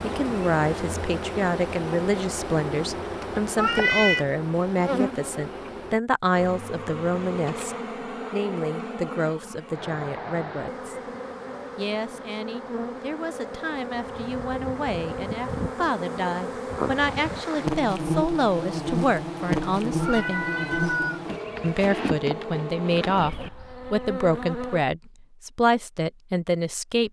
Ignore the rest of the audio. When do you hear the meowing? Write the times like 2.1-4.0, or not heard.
3.5-4.2, 20.0-21.2.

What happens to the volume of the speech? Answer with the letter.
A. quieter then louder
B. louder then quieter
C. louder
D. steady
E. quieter
A.